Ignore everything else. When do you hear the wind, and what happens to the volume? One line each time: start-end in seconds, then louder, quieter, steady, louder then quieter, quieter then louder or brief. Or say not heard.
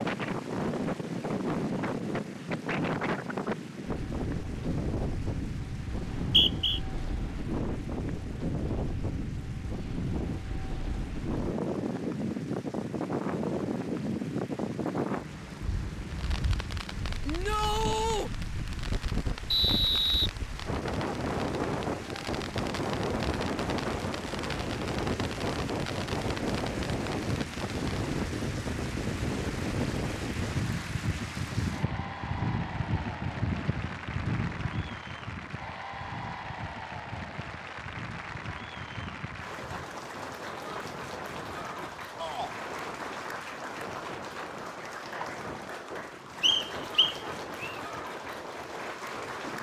0.0-49.5 quieter.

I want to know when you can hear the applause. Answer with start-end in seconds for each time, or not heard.
0.0-49.5.